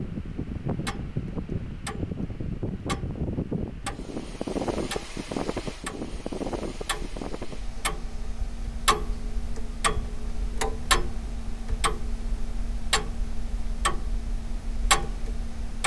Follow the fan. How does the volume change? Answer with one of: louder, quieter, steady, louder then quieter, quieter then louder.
quieter.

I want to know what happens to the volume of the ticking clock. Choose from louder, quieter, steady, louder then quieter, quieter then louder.
louder.